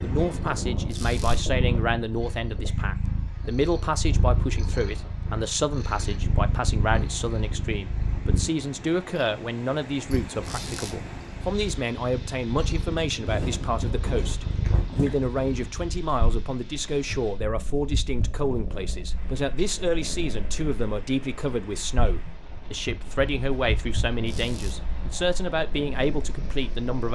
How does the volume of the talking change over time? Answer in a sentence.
The volume of the talking stays about the same.